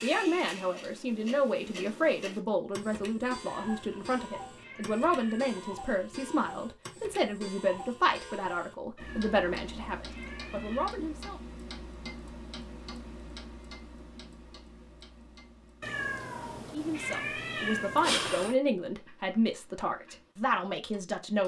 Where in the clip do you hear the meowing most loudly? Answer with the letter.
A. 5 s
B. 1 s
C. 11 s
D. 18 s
D.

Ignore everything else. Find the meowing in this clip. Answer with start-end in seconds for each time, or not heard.
3.5-5.7, 8.9-10.9, 15.8-18.6.